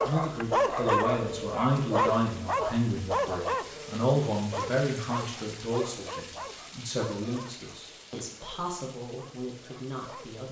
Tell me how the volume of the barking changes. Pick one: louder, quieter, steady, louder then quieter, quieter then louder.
quieter.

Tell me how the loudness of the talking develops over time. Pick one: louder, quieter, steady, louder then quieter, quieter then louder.
quieter.